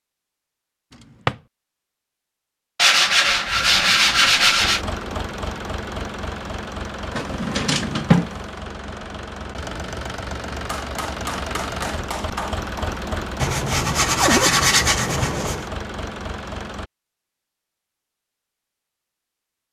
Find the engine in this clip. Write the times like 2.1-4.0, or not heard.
4.6-16.9.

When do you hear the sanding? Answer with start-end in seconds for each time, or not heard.
2.8-4.8, 13.4-15.7.